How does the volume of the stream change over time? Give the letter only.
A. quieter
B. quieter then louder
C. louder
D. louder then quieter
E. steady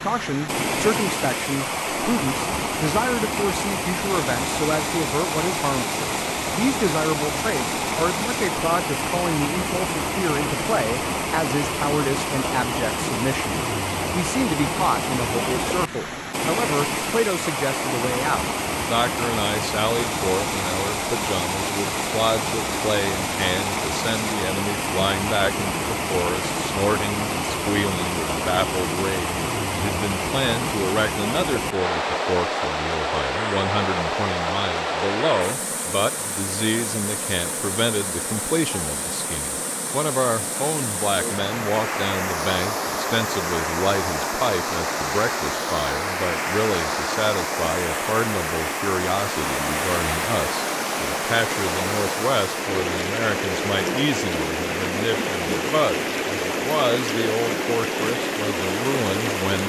E.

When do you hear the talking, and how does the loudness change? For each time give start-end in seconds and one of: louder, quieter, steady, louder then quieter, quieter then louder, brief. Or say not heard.
0.0-59.6 steady.